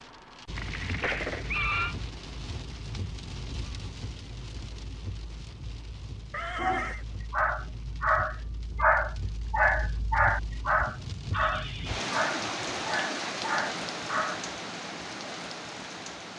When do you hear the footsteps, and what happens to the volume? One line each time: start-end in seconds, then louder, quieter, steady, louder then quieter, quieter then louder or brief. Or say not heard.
not heard.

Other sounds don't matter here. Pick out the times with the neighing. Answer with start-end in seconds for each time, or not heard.
0.6-1.9, 6.3-7.0, 11.3-12.1.